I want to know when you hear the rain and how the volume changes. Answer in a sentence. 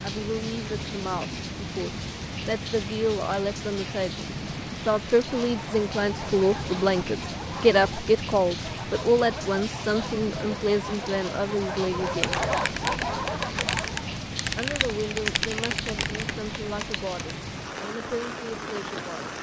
You can hear the rain from 0.0 to 19.3 s, at a steady volume.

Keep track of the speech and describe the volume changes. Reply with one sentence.
The loudness of the speech goes up, then down.